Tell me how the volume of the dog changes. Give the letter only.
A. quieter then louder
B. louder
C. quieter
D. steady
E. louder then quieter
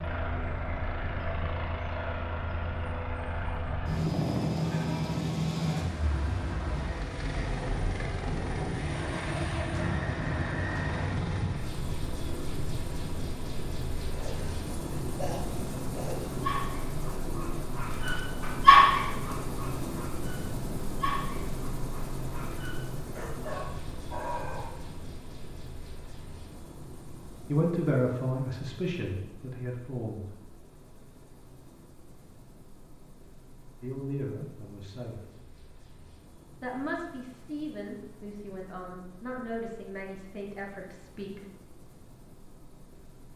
E.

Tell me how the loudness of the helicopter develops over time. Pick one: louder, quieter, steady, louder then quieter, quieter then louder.
quieter.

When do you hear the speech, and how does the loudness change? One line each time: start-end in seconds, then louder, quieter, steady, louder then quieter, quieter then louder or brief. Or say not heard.
27.4-30.2 brief
33.8-35.2 brief
36.6-41.4 steady.